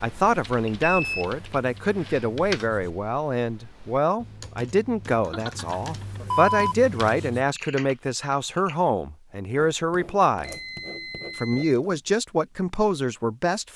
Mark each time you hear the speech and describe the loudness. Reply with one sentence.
You can hear the speech from 0.0 to 10.6 s, at a steady volume; and briefly from 11.3 to 13.7 s.